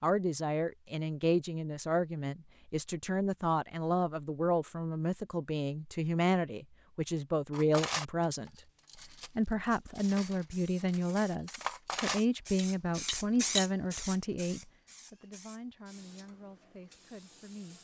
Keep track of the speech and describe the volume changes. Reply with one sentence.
The loudness of the speech goes down.